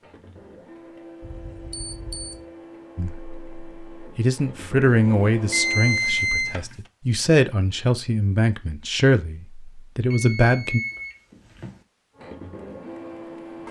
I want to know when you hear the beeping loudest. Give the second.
6 s.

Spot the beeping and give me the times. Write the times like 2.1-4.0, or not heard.
1.2-2.4, 5.5-6.5, 10.1-11.8.